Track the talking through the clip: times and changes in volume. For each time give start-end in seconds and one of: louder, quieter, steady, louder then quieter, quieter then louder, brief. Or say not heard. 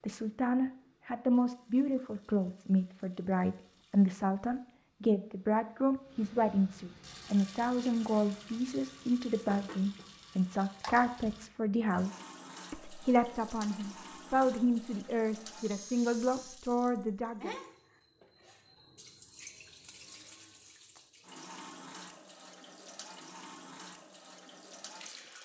0.0-17.5 steady.